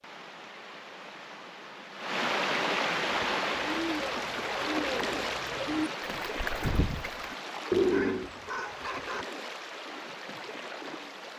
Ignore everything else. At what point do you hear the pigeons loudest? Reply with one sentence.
The loudest moment of the pigeons is at 8 seconds.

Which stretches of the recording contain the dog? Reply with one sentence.
You can hear the dog from 7.8 to 9.2 s.